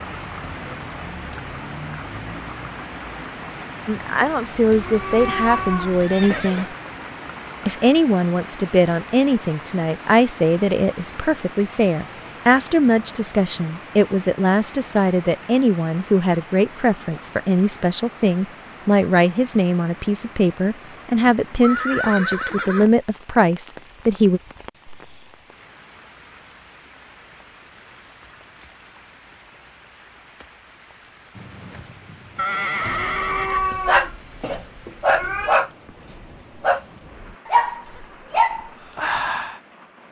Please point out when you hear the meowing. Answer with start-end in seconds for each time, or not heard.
4.7-6.5, 32.8-35.6.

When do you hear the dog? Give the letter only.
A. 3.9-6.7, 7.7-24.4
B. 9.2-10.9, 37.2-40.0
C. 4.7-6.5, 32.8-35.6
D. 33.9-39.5
D.